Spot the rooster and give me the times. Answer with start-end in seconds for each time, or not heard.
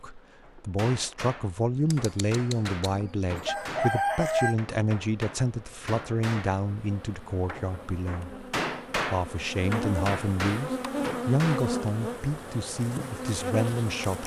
1.9-4.5.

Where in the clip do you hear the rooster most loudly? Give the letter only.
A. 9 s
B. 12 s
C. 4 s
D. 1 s
C.